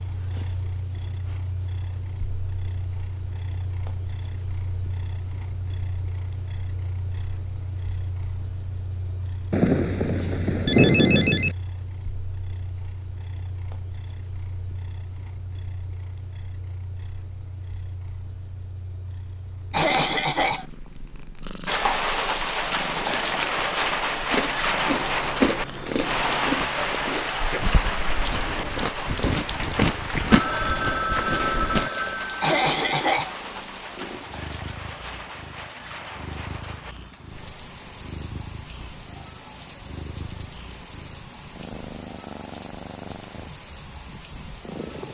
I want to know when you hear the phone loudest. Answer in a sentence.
The loudest moment of the phone is at 11 seconds.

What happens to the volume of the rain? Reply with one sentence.
The loudness of the rain goes down.